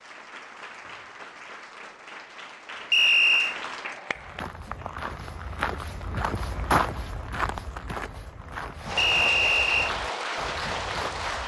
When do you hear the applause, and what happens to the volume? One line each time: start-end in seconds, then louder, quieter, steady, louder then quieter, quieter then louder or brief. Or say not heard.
0.0-4.5 louder
8.8-11.4 brief.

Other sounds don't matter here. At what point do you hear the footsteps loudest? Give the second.
7 s.